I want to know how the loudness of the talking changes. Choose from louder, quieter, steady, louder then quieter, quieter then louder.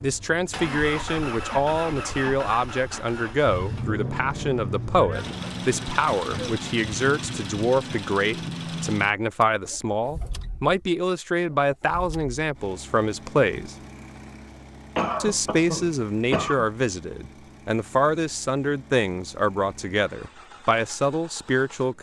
steady.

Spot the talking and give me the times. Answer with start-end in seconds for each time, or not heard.
0.0-13.8, 15.2-21.9.